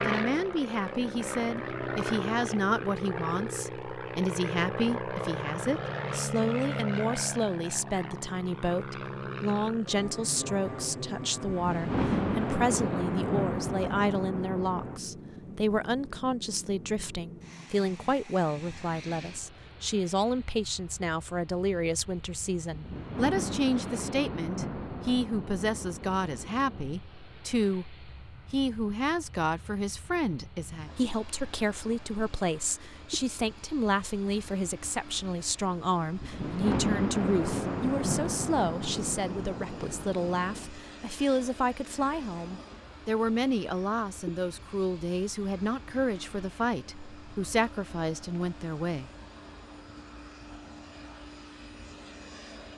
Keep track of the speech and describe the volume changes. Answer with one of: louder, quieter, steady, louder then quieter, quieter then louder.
steady.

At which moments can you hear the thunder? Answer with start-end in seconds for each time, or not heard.
11.4-15.0, 22.7-26.9, 36.2-40.7.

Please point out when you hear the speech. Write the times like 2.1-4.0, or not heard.
0.0-49.1.